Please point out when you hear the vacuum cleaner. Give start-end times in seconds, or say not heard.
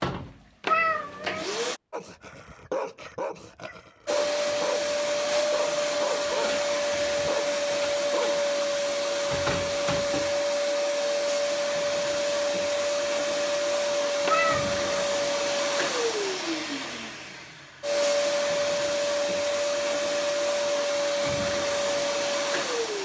0.0-1.8, 4.0-23.0.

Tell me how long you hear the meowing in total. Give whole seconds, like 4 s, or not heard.
2 s.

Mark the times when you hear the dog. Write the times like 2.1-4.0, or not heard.
1.9-8.4.